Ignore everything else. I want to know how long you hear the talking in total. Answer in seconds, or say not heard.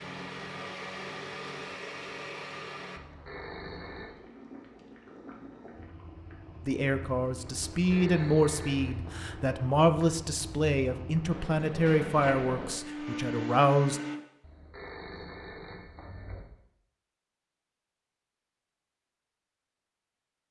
7 s.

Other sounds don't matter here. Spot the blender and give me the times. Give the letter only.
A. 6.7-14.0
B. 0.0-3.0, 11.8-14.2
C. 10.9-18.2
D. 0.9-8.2
B.